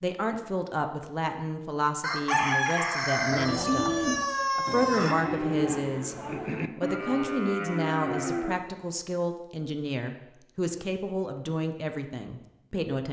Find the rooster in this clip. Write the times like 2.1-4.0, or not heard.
2.0-5.2.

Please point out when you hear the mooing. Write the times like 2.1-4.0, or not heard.
3.2-8.7.